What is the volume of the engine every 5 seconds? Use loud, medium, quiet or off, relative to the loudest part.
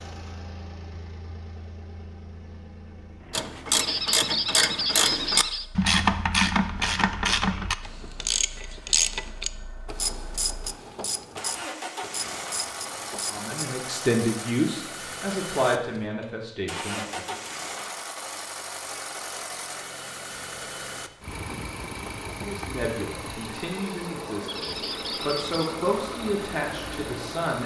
medium, quiet, loud, loud, loud, loud.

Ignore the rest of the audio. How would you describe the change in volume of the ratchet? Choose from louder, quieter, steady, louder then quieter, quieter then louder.
quieter.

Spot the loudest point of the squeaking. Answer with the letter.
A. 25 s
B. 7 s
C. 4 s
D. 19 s
C.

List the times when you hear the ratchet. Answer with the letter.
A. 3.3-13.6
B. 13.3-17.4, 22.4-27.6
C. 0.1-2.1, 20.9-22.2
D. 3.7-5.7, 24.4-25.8
A.